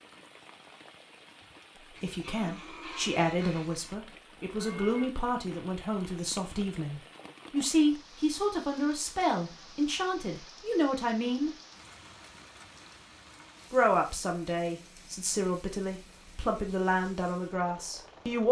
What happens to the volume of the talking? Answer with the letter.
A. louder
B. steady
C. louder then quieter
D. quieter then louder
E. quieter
B.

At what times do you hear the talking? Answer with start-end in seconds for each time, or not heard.
2.0-11.5, 13.7-18.4.